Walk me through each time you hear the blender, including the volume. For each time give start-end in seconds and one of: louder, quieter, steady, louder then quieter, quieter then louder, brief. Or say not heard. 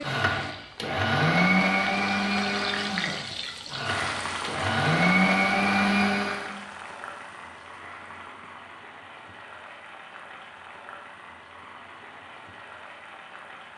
0.0-6.5 quieter then louder.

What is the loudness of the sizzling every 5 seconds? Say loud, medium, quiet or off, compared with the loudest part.
loud, medium, medium.